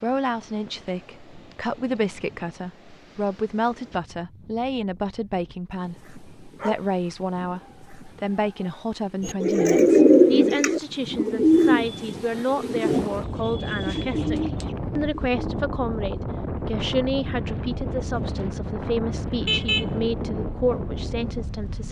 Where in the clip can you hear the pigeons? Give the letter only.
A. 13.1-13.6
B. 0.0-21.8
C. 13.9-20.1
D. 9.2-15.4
D.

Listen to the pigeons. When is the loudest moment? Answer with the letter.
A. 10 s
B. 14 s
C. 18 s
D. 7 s
A.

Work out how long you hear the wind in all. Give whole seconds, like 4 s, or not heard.
22 s.